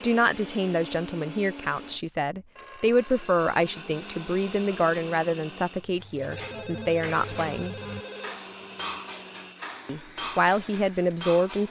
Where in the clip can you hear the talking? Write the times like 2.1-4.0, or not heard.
0.0-7.8, 9.8-11.6.